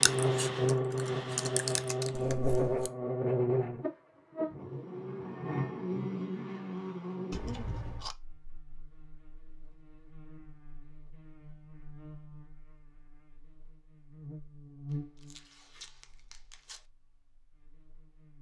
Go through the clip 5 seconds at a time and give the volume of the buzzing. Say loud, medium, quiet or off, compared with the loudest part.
loud, medium, quiet, quiet.